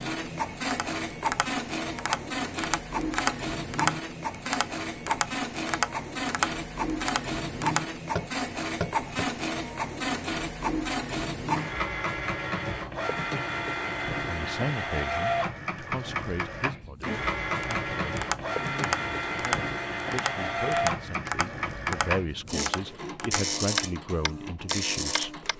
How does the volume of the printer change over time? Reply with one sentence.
The volume of the printer stays about the same.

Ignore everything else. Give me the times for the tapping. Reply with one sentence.
You can hear the tapping from 0.7 to 9.3 s and from 17.6 to 25.5 s.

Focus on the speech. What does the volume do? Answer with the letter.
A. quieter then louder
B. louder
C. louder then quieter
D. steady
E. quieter
A.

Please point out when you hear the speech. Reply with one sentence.
The speech can be heard from 14.2 to 25.4 s.